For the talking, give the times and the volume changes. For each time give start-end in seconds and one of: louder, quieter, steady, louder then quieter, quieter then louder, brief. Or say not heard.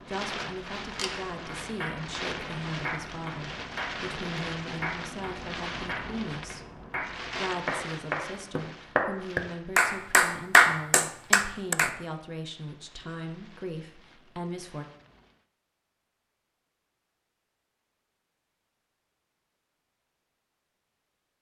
0.1-14.8 steady.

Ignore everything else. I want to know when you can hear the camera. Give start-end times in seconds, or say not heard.
0.8-1.3.